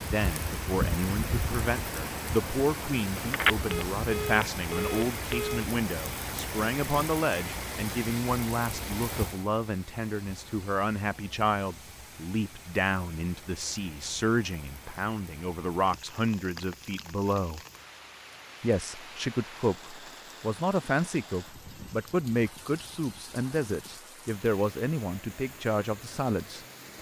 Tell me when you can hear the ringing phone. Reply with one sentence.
The ringing phone can be heard from 3.3 to 5.7 s.